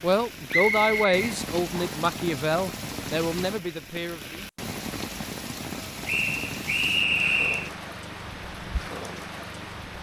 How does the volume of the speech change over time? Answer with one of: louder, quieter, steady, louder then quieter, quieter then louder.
quieter.